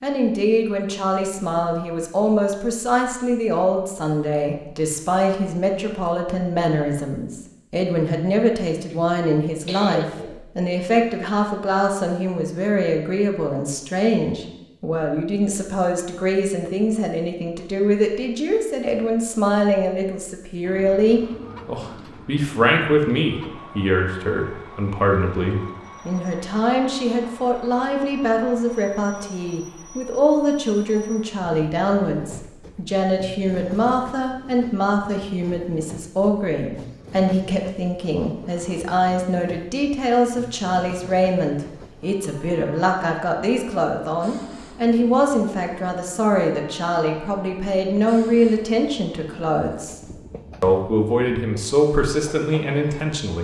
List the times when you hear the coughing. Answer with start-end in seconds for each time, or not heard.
8.9-10.4.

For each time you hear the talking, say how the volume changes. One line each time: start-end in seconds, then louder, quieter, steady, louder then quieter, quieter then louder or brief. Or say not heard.
0.0-50.0 steady
50.6-53.4 brief.